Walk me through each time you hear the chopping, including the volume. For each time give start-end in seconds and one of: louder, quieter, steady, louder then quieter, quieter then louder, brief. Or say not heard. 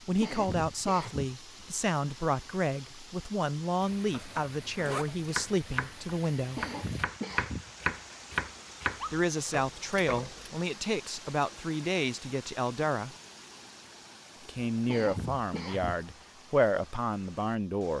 5.0-10.7 louder then quieter.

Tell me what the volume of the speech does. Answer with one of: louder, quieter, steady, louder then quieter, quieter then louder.
steady.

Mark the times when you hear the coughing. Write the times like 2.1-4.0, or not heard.
0.2-1.3, 6.5-7.7, 14.8-16.1.